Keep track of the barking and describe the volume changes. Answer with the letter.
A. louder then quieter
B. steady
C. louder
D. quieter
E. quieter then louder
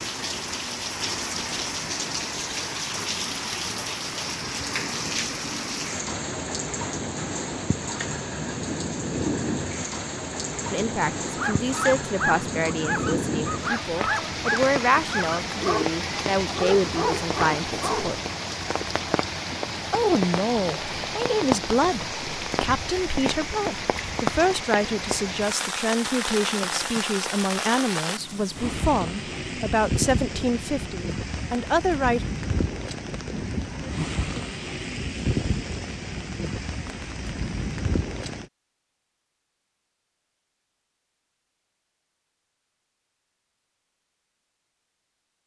B.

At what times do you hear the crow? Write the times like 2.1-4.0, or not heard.
not heard.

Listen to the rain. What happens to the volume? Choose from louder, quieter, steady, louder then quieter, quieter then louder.
steady.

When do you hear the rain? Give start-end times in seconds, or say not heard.
0.0-38.5.